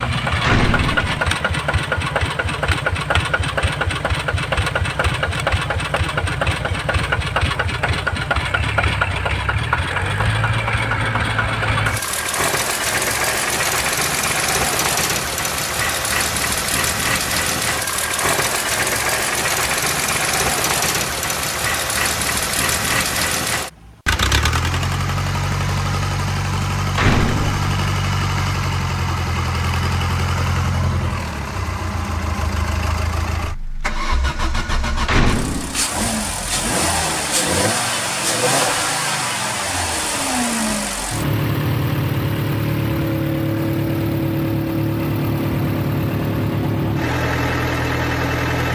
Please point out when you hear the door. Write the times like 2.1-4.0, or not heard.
0.4-1.2, 26.9-27.7, 35.0-35.9.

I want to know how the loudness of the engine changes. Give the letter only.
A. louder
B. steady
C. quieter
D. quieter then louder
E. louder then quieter
B.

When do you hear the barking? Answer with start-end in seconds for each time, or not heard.
not heard.